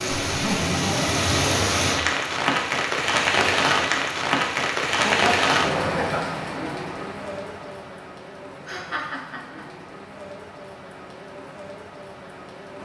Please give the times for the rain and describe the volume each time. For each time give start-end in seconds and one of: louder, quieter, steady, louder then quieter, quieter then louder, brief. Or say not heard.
0.0-12.7 quieter.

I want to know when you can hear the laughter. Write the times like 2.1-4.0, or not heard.
0.2-1.2, 5.0-6.2, 8.7-9.7.